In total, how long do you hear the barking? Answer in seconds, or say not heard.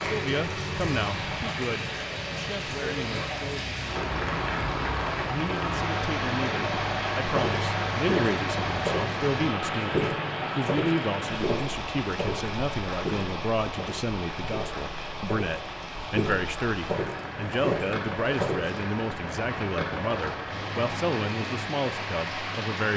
not heard.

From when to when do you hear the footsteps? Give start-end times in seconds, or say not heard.
7.3-18.8.